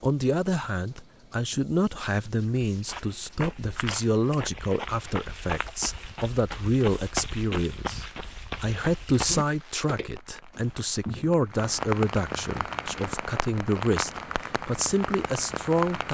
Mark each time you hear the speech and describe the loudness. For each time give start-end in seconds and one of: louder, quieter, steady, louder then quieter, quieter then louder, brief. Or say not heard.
0.0-16.0 steady.